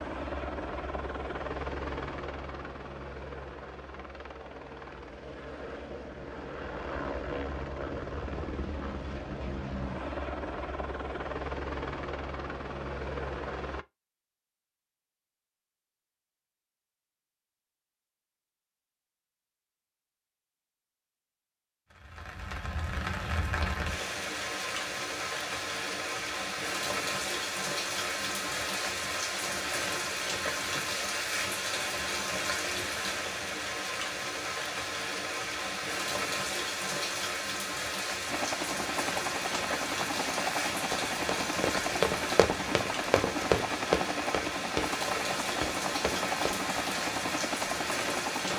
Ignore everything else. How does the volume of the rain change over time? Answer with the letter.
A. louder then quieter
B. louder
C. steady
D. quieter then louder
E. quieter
C.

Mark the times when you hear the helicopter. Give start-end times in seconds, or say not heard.
0.0-13.8, 38.2-48.5.